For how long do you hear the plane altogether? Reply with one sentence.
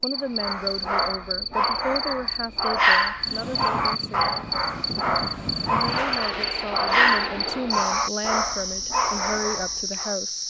You can hear the plane for 5 seconds altogether.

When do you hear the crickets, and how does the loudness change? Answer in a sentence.
The crickets can be heard from 0.0 to 10.4 s, at a steady volume.